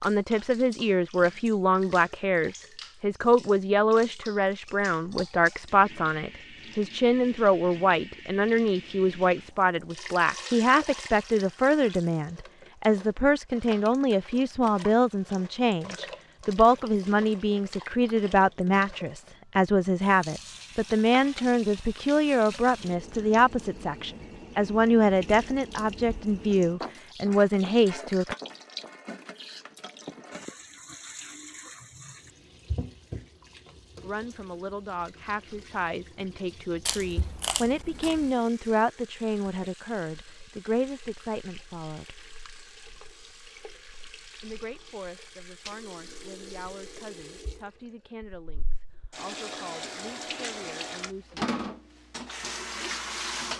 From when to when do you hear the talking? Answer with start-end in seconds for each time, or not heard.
0.0-28.4, 34.0-42.2, 44.4-51.5.